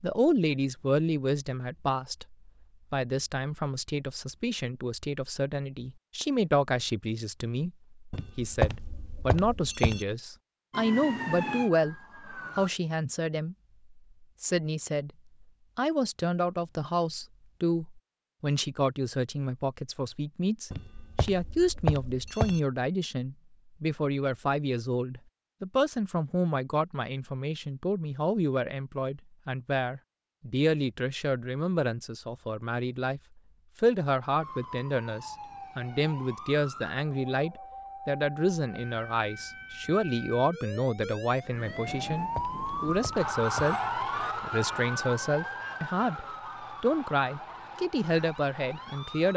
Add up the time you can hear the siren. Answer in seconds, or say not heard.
17 s.